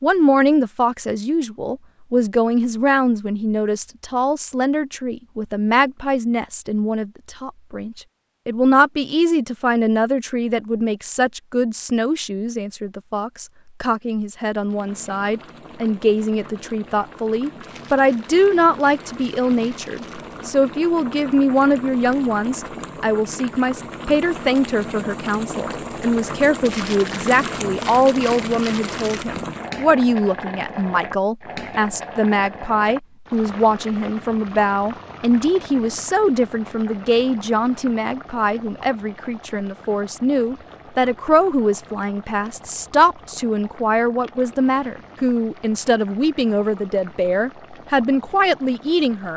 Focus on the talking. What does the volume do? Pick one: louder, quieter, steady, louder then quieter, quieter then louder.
steady.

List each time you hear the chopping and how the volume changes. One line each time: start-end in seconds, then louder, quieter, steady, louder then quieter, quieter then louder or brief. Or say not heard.
not heard.